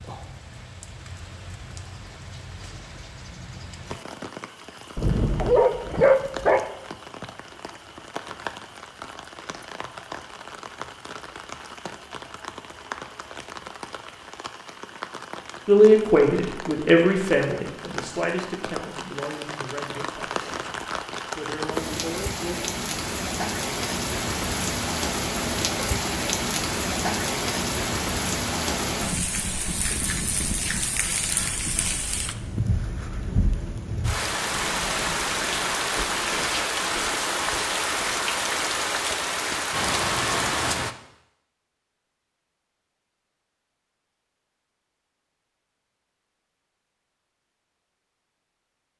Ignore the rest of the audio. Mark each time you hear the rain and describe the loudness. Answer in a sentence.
You can hear the rain from 0.0 to 41.0 s, getting louder.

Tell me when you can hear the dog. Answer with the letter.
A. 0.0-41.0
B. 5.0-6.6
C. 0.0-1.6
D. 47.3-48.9
B.